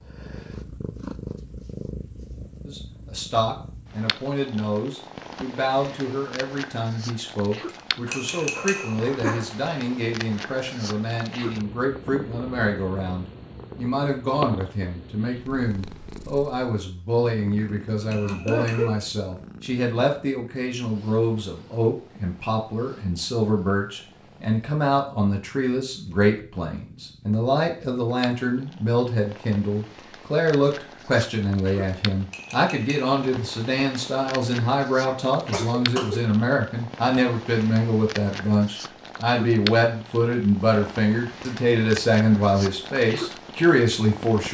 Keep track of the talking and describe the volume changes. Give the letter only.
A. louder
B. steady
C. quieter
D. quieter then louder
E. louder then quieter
A.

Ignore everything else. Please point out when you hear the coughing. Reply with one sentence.
You can hear the coughing from 8.1 to 9.4 s, from 18.2 to 18.9 s and from 35.0 to 36.2 s.